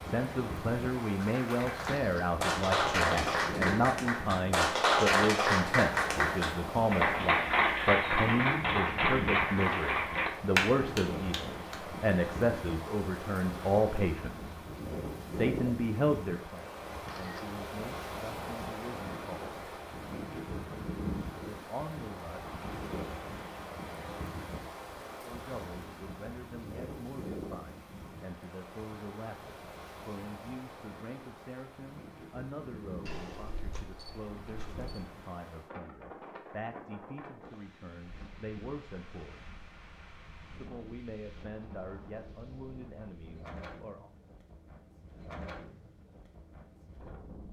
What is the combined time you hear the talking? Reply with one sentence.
The talking can be heard for 38 seconds in total.